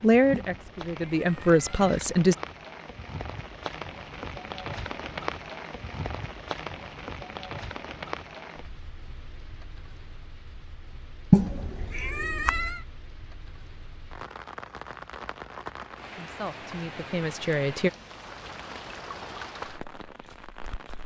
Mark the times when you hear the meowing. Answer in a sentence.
The meowing can be heard from 0.3 to 2.2 s and from 11.3 to 12.8 s.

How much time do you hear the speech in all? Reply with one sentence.
The speech can be heard for 4 seconds in total.